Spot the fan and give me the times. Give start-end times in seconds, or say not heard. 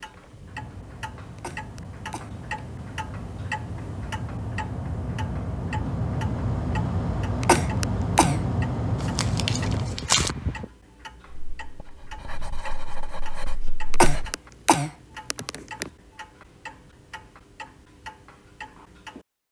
0.1-10.7.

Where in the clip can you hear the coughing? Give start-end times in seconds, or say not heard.
1.4-2.4, 7.4-8.4, 13.9-15.9.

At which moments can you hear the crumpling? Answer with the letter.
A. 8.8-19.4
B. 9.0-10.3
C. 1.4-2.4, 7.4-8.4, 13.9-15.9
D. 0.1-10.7
B.